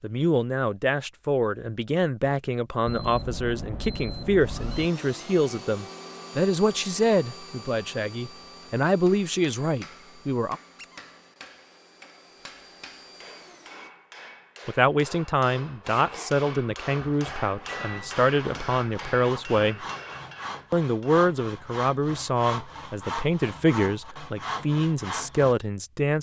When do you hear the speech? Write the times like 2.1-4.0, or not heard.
0.0-10.6, 14.7-19.9, 20.7-26.1.